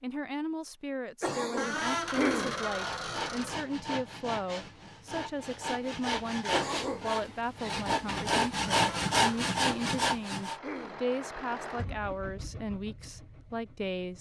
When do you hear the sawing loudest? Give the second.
9 s.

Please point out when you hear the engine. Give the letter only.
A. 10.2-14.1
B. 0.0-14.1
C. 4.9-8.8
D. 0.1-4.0
A.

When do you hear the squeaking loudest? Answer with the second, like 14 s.
2 s.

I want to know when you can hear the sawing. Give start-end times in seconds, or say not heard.
1.6-10.6.